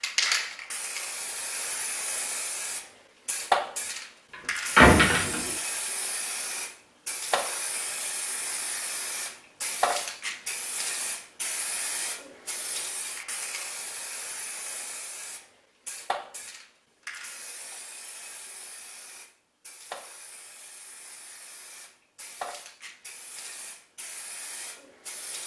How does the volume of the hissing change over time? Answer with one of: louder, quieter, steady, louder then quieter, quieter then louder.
quieter.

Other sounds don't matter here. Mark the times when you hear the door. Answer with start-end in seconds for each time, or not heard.
4.8-5.5.